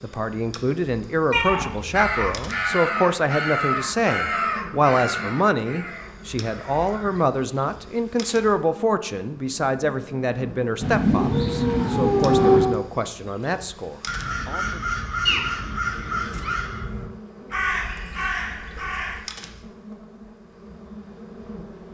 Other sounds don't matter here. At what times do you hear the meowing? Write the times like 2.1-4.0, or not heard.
1.3-2.5, 10.8-12.8, 15.2-16.6.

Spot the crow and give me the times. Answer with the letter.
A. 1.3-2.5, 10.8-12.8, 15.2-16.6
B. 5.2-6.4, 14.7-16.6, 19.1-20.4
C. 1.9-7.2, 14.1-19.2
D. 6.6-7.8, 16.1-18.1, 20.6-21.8
C.